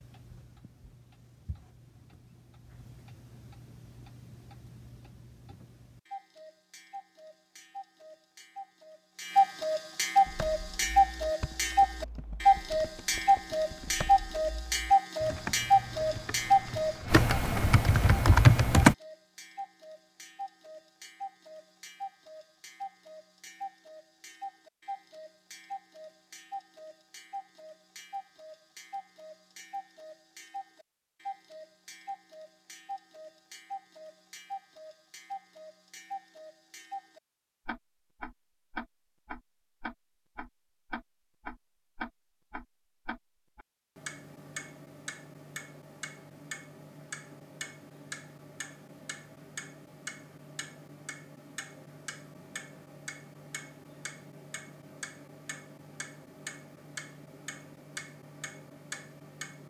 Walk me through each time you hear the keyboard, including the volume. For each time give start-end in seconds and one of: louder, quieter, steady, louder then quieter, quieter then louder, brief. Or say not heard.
10.2-18.9 louder.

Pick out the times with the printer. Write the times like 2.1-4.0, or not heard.
not heard.